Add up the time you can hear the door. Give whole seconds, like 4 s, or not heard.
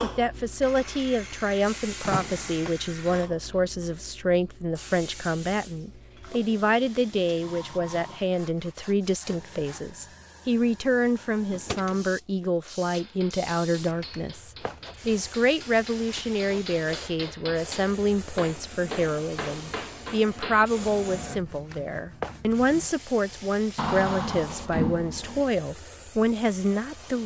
3 s.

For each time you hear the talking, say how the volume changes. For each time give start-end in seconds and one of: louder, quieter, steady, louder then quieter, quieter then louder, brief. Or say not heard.
0.0-27.2 steady.